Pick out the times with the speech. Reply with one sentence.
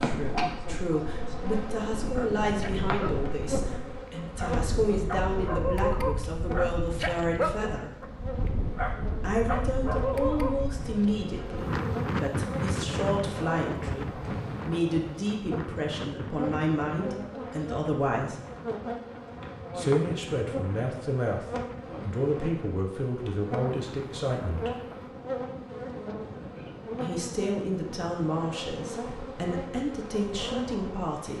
You can hear the speech from 0.0 to 8.0 s, from 9.2 to 18.4 s, from 19.8 to 24.8 s and from 27.0 to 31.3 s.